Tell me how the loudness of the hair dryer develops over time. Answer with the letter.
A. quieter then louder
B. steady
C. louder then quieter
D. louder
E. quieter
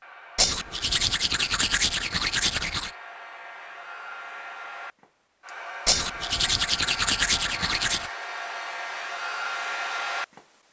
D.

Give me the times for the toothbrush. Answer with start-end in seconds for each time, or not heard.
0.3-2.9, 5.8-8.1.